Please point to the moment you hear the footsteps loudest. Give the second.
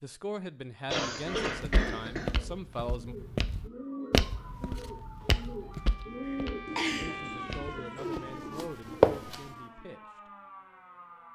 9 s.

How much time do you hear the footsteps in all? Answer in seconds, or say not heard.
8 s.